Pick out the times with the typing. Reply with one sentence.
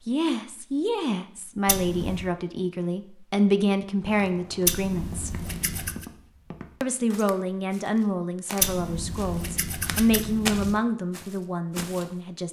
The typing can't be heard in this clip.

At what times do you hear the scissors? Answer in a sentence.
The scissors can be heard from 1.6 to 2.2 s, from 4.7 to 6.0 s and from 8.6 to 10.8 s.